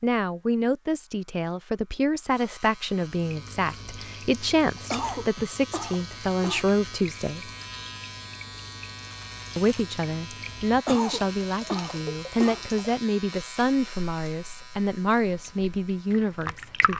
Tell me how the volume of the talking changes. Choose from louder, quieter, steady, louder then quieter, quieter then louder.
steady.